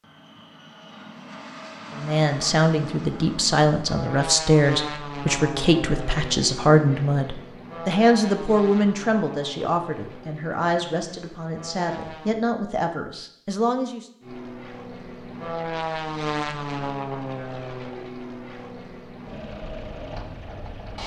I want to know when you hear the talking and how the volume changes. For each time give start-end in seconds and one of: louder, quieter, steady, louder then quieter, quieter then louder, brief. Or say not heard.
1.9-14.1 quieter.